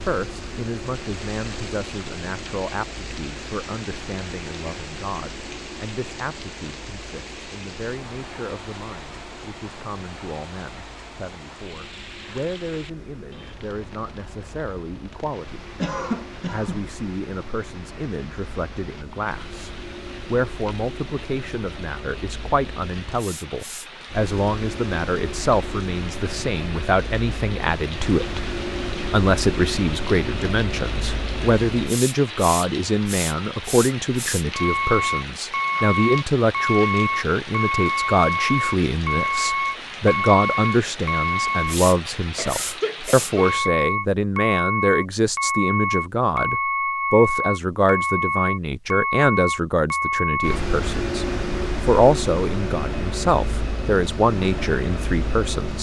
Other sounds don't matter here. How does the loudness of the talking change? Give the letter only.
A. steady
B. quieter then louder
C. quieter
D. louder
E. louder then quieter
D.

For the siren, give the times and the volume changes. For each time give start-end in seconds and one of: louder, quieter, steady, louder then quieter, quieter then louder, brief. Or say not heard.
not heard.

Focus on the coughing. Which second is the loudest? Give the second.
16 s.